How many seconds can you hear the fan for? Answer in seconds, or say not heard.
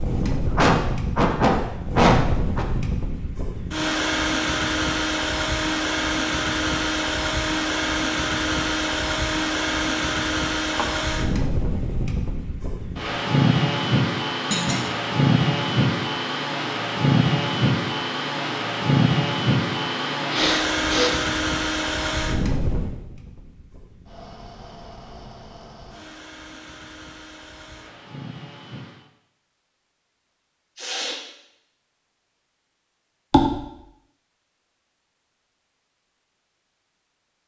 29 s.